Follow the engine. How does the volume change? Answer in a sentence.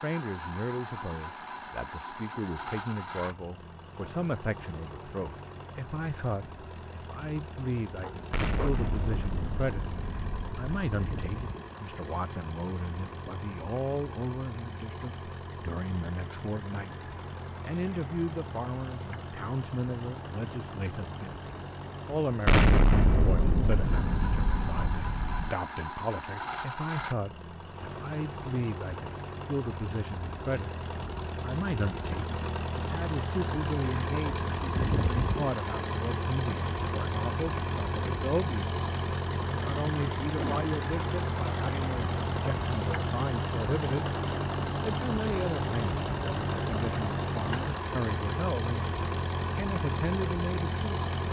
The volume of the engine goes up.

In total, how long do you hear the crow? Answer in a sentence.
You can't hear the crow here.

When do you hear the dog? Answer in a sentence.
You can hear the dog from 8.0 to 8.8 s.